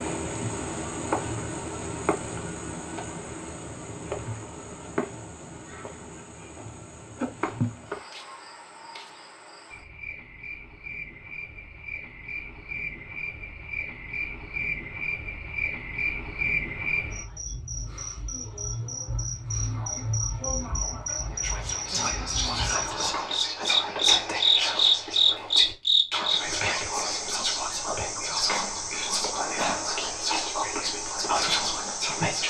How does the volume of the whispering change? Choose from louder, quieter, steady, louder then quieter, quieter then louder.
steady.